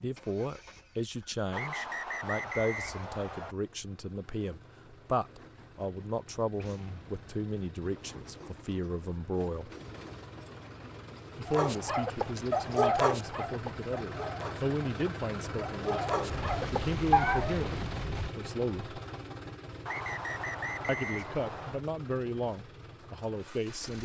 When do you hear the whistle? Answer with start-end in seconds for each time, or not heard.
1.5-3.5, 19.9-21.8.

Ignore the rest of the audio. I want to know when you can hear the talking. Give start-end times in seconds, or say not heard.
0.0-9.7, 11.3-19.0, 20.9-23.9.